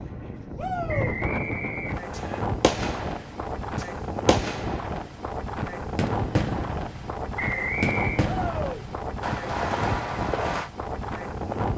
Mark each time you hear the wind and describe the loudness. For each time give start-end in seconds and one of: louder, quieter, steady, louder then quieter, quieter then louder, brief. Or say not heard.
0.0-11.7 steady.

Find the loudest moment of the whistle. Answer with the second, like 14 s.
8 s.